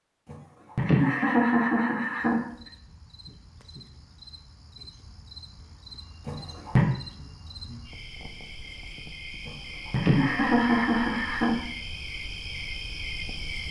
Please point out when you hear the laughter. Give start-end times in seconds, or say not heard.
0.3-2.5, 6.2-6.8, 9.4-11.6.